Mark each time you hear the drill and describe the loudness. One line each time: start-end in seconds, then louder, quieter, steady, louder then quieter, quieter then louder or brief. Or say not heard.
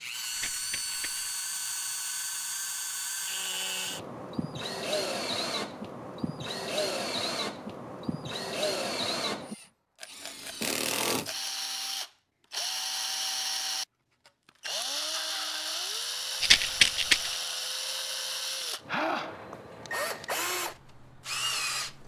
0.0-22.0 steady.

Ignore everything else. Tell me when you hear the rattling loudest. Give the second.
17 s.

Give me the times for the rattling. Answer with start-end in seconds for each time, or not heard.
0.3-1.3, 9.9-11.5, 16.4-17.4.